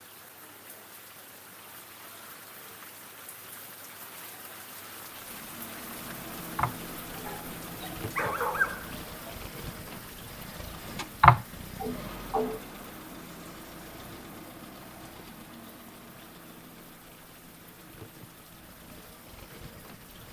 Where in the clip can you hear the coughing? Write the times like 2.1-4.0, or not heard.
6.5-7.3, 11.2-12.6.